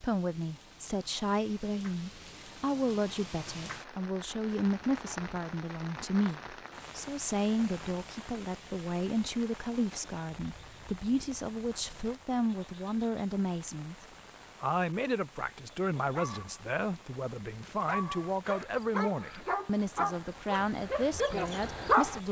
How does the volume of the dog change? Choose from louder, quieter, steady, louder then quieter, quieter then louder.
louder.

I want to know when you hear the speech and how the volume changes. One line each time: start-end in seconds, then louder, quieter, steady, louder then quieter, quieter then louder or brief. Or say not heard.
0.0-22.2 steady.